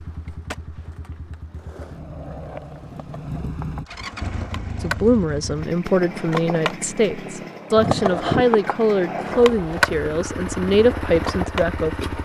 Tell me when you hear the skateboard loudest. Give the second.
8 s.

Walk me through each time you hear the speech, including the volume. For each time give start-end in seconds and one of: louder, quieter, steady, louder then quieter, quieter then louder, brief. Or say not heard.
4.8-12.2 steady.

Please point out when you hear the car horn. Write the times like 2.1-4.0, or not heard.
not heard.